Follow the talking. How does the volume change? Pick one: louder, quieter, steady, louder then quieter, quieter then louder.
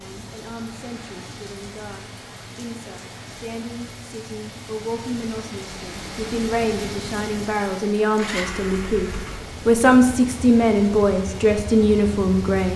louder.